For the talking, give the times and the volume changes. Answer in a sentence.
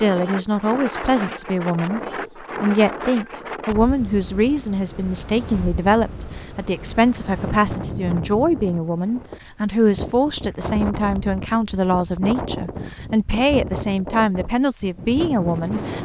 You can hear the talking from 0.0 to 15.9 s, at a steady volume.